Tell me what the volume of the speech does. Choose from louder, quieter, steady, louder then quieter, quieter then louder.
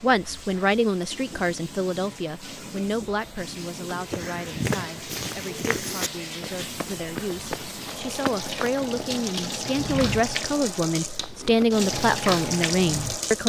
quieter then louder.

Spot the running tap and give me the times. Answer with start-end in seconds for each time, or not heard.
0.0-13.4.